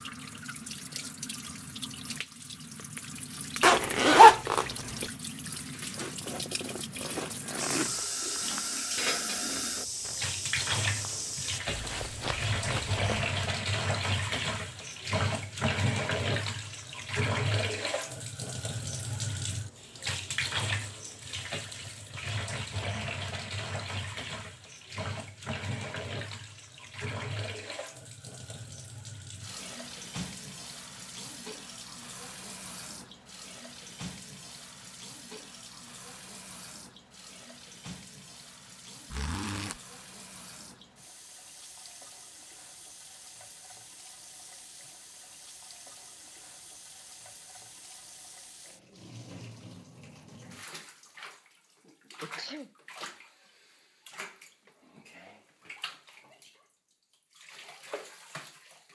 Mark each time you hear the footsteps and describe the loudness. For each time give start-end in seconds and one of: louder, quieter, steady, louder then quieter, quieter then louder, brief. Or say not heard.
7.2-13.3 steady.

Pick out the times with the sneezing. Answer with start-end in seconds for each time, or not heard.
52.2-52.7.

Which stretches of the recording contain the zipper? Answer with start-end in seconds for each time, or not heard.
3.6-4.7, 39.1-39.8.